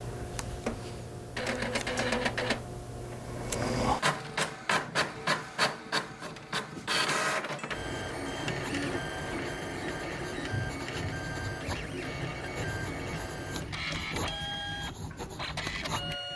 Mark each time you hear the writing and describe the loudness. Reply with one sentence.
The writing can be heard from 7.8 to 16.2 s, at a steady volume.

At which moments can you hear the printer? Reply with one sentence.
The printer can be heard from 0.0 to 16.3 s.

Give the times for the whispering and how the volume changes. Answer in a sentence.
You can't hear the whispering here.